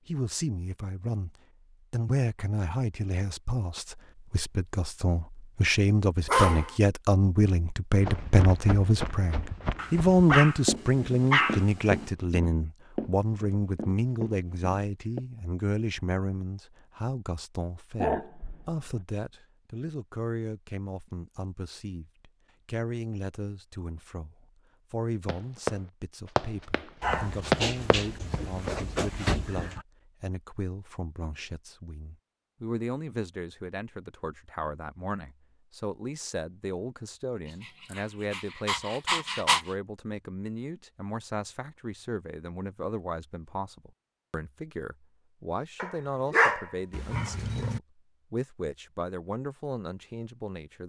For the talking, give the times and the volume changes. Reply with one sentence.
The talking can be heard from 0.1 to 50.8 s, getting quieter.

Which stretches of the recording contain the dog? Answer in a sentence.
You can hear the dog from 6.2 to 6.8 s, from 9.8 to 12.1 s, from 18.0 to 19.0 s, from 27.0 to 29.9 s, from 37.9 to 39.6 s and from 45.8 to 47.8 s.